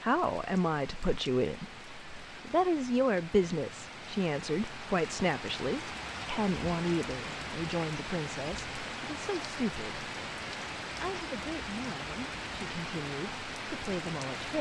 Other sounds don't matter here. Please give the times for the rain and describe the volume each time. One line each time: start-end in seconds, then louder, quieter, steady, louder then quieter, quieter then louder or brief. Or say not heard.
0.0-14.5 louder.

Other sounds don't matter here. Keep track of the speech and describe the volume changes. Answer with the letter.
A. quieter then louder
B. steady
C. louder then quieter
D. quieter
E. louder
D.